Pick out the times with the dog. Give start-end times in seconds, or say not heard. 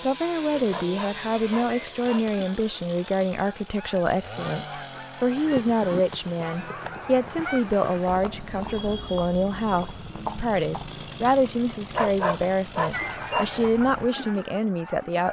0.7-2.3, 11.9-13.6.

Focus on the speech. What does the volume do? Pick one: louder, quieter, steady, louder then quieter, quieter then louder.
steady.